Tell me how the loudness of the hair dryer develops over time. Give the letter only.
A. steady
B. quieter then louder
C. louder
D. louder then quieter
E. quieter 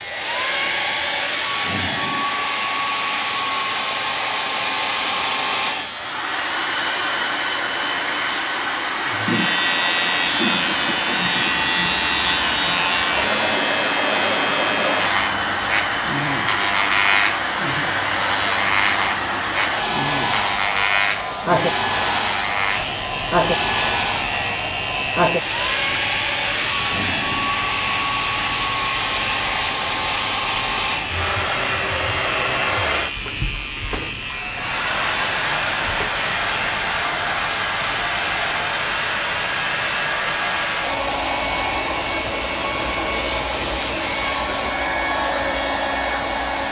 A.